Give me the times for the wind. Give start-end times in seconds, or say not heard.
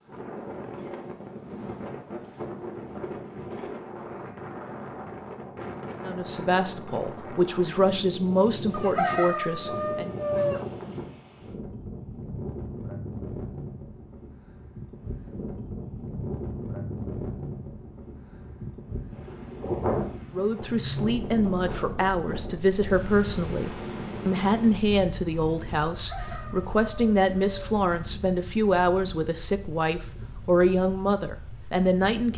0.0-32.3.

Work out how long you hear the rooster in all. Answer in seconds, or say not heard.
4 s.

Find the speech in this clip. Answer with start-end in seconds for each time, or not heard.
6.0-10.1, 20.3-32.3.